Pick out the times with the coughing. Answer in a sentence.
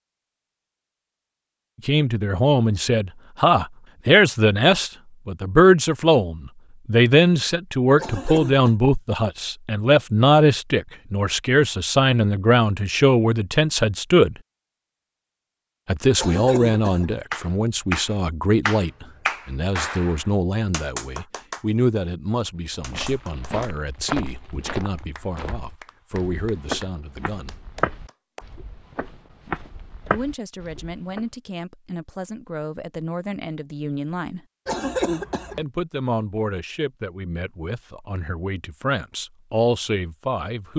You can hear the coughing from 8.0 to 8.8 s, from 16.1 to 17.1 s and from 34.6 to 35.6 s.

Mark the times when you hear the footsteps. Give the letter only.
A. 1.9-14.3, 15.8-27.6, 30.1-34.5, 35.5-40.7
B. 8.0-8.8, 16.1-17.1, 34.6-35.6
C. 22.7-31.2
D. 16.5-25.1
C.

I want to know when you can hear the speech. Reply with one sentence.
The speech can be heard from 1.9 to 14.3 s, from 15.8 to 27.6 s, from 30.1 to 34.5 s and from 35.5 to 40.7 s.